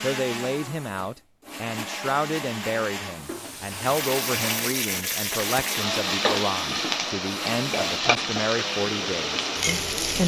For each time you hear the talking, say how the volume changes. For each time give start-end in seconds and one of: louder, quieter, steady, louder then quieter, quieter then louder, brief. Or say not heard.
0.0-10.2 steady.